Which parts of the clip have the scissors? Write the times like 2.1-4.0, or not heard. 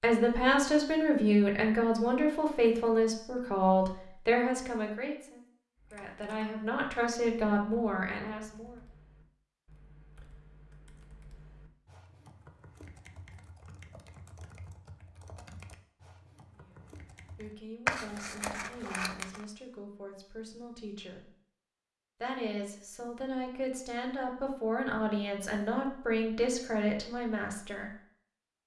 17.9-19.4.